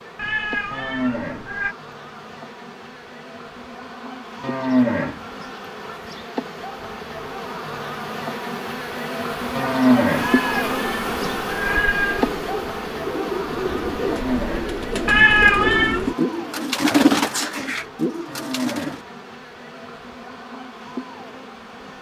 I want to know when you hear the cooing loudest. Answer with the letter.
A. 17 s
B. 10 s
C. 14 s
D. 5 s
A.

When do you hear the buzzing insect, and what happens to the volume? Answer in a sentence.
You can hear the buzzing insect from 0.0 to 21.9 s, getting louder then quieter.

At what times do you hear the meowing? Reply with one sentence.
The meowing can be heard from 0.1 to 1.8 s, from 10.2 to 12.3 s and from 15.1 to 16.0 s.